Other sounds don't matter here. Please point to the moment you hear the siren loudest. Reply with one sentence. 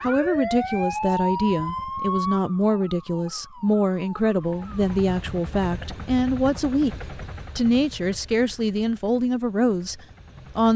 The loudest moment of the siren is at 1 second.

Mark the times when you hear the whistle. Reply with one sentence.
You can't hear the whistle here.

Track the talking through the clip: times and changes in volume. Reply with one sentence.
The talking can be heard from 0.0 to 10.7 s, at a steady volume.